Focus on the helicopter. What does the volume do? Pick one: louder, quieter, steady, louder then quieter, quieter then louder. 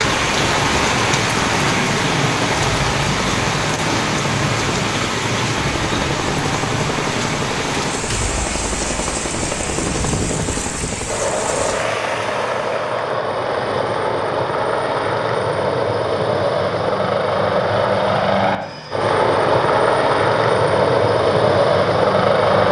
louder.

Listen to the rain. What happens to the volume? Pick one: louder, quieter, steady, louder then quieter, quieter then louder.
quieter.